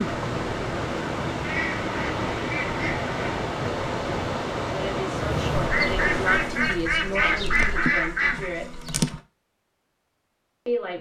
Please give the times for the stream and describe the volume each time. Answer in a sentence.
The stream can be heard from 0.0 to 6.8 s, at a steady volume.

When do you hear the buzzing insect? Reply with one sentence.
You can hear the buzzing insect from 5.1 to 9.2 s.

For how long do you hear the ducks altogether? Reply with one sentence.
You can hear the ducks for 5 seconds altogether.